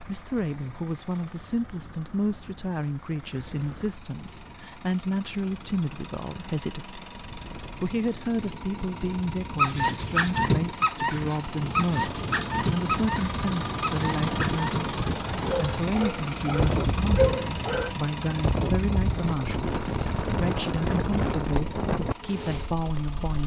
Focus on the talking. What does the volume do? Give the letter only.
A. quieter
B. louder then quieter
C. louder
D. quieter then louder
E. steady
E.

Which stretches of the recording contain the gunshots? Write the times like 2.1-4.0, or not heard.
not heard.